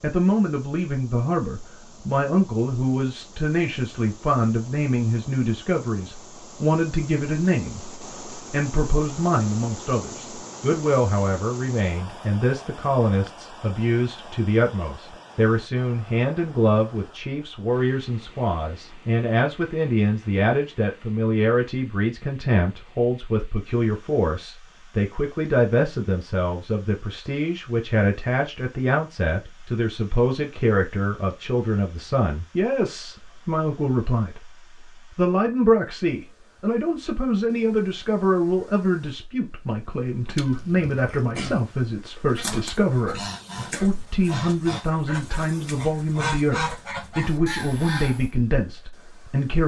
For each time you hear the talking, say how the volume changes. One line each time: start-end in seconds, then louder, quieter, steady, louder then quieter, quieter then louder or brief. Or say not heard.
0.0-7.9 steady
8.5-34.5 steady
35.1-49.6 steady.